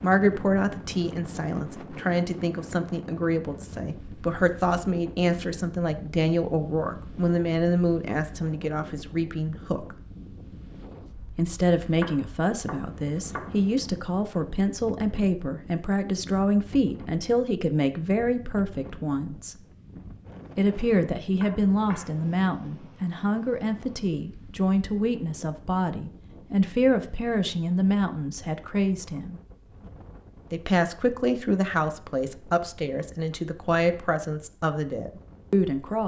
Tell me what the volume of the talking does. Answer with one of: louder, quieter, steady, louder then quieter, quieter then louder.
steady.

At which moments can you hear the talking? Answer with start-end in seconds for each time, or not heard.
0.0-10.0, 11.3-19.6, 20.6-29.4, 30.5-36.0.